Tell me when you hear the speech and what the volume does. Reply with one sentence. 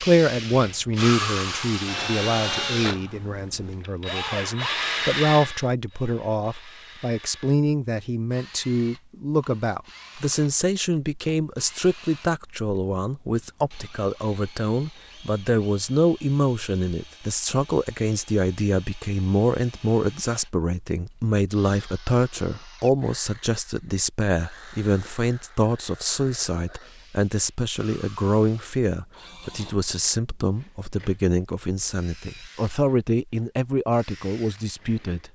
You can hear the speech from 0.0 to 35.3 s, at a steady volume.